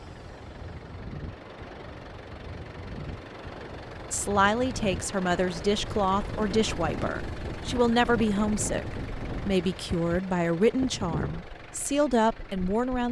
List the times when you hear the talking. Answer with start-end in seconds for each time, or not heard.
4.1-13.0.